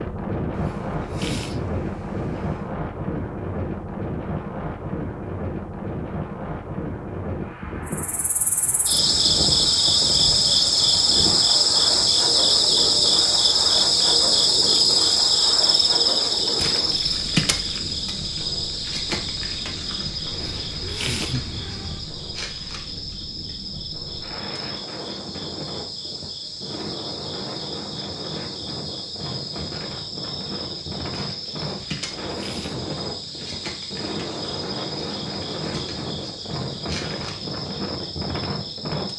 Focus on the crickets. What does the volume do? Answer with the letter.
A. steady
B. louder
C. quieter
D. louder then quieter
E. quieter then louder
C.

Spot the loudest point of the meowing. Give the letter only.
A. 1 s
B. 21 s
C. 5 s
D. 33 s
B.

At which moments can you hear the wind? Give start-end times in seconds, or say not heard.
0.0-39.1.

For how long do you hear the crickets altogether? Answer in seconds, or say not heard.
31 s.